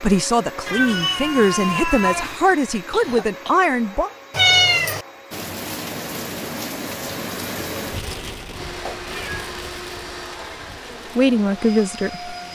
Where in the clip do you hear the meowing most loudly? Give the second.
5 s.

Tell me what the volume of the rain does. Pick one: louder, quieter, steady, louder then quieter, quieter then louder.
quieter.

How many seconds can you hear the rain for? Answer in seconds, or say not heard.
7 s.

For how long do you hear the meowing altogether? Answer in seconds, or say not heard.
3 s.